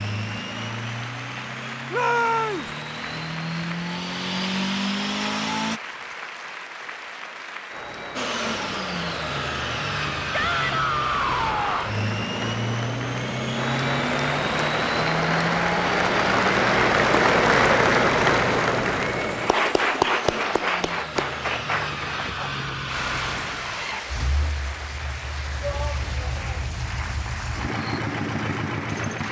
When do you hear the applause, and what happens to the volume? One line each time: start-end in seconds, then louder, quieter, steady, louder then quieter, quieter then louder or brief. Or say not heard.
0.0-29.2 louder then quieter.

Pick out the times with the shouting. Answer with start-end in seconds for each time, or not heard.
1.9-2.6, 10.3-11.9, 25.6-26.6.